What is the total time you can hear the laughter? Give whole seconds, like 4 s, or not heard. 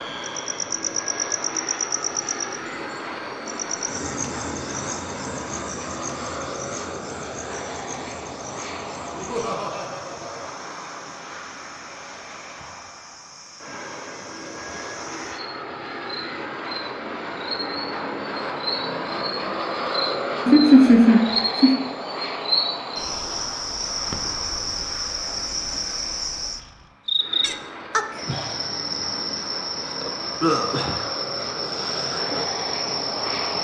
3 s.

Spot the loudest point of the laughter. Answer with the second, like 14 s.
21 s.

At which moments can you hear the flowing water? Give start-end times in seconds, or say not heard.
not heard.